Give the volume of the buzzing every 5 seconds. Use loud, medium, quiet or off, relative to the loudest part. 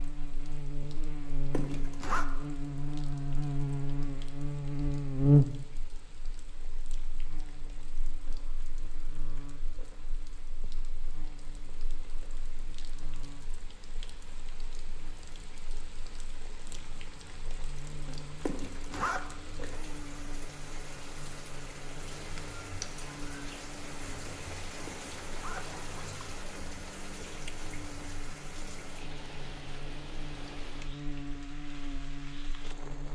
medium, loud, quiet, quiet, quiet, quiet, quiet.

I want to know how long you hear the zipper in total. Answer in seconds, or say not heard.
3 s.